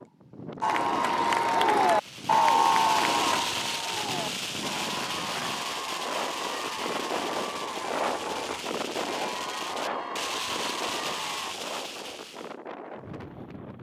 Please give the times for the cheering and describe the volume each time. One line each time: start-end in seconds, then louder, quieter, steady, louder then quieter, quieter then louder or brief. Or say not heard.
0.6-11.6 quieter.